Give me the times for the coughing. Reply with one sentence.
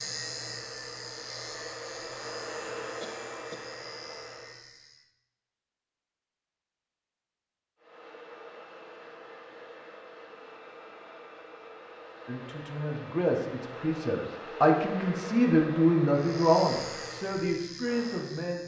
You can hear the coughing from 3.0 to 3.6 s.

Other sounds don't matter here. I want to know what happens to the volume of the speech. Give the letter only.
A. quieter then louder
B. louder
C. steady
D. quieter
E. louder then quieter
E.